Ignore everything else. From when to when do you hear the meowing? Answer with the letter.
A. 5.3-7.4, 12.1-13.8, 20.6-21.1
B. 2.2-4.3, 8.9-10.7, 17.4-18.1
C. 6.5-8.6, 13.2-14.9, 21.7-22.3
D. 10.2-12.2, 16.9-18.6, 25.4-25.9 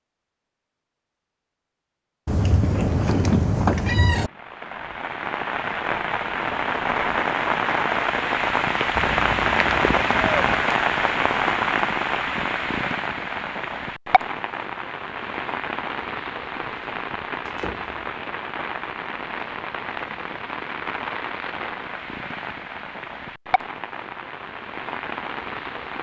B.